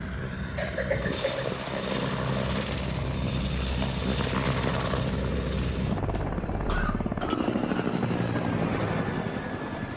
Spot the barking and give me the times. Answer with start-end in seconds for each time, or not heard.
not heard.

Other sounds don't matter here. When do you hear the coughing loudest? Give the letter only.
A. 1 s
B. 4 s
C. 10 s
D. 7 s
A.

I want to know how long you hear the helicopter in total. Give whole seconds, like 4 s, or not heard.
10 s.